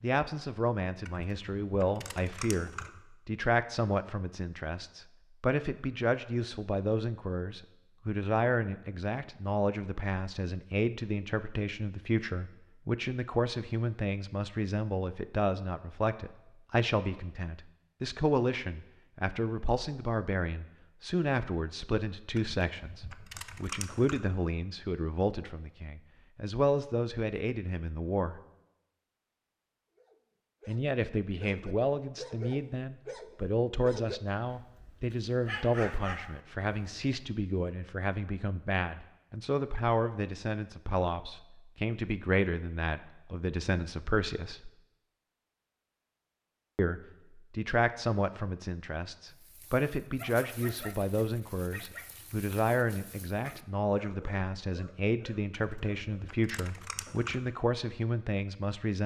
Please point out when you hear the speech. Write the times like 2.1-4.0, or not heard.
0.0-28.4, 30.6-44.7, 46.8-59.0.